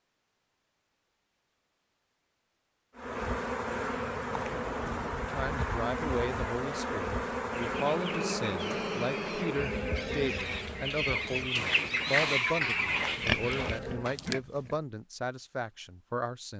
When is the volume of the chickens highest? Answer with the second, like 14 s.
12 s.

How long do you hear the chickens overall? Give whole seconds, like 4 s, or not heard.
7 s.